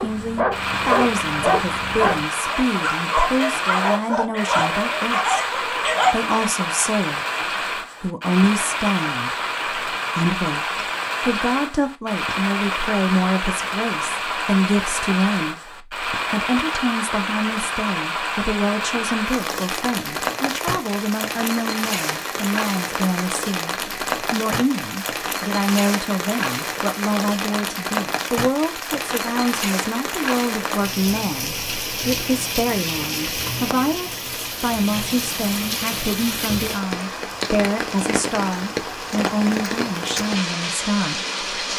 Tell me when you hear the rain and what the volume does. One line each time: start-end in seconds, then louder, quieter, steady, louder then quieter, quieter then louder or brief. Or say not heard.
0.0-41.7 steady.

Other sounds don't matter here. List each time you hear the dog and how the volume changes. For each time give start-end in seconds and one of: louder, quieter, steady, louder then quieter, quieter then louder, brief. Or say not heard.
0.0-6.3 steady.